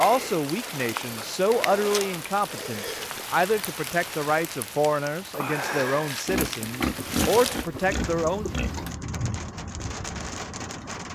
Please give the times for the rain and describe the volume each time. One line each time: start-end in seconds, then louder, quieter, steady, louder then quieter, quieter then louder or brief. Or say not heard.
0.0-11.0 steady.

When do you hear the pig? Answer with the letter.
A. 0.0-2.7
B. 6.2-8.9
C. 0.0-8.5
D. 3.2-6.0
B.